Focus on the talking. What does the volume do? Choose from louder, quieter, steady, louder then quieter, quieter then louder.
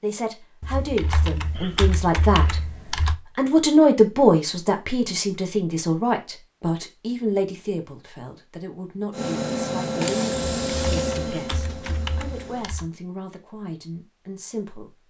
louder then quieter.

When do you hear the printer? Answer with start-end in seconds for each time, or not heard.
9.1-12.7.